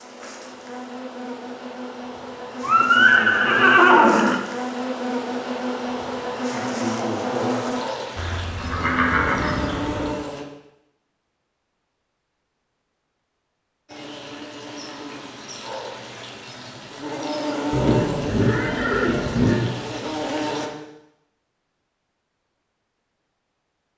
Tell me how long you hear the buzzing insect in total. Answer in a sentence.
You can hear the buzzing insect for 17 seconds altogether.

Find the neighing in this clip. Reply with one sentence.
The neighing can be heard from 2.6 to 4.4 s, from 8.2 to 10.2 s and from 17.7 to 19.7 s.